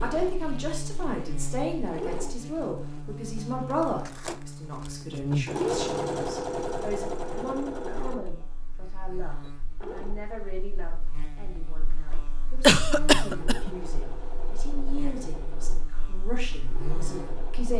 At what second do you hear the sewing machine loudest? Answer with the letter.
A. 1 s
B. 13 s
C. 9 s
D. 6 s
D.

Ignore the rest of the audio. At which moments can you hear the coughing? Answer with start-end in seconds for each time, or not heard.
12.6-13.7.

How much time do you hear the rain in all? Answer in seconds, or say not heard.
not heard.